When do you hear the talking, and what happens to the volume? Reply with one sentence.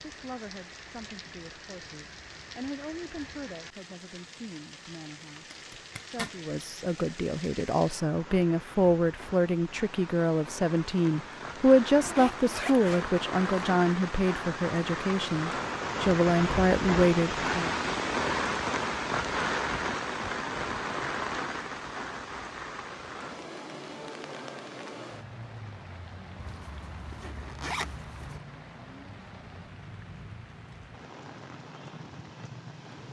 The talking can be heard from 0.1 to 17.7 s, getting louder.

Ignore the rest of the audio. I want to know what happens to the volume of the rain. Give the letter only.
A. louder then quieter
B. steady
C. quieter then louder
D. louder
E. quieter
A.